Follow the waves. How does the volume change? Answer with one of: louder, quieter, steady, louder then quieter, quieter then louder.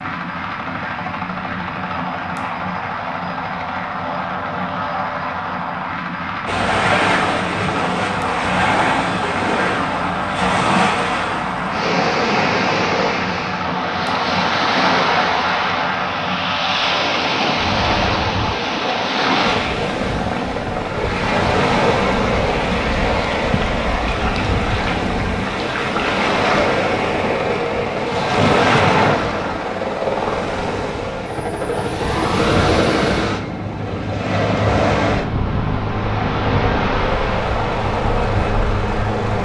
steady.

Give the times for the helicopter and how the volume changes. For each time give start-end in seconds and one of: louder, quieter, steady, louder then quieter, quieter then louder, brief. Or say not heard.
0.0-39.4 steady.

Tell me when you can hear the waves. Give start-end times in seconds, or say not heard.
6.5-39.4.